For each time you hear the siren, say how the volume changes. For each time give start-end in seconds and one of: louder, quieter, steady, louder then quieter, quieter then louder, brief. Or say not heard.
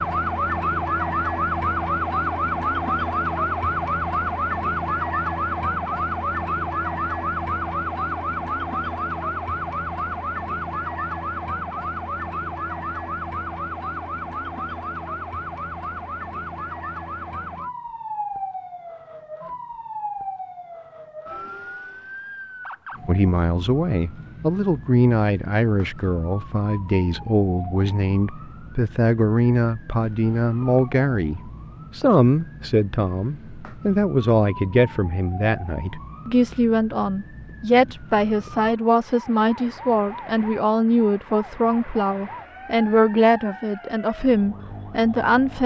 0.0-45.6 quieter.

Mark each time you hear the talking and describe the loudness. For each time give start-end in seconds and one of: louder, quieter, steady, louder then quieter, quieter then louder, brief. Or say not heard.
23.1-45.6 steady.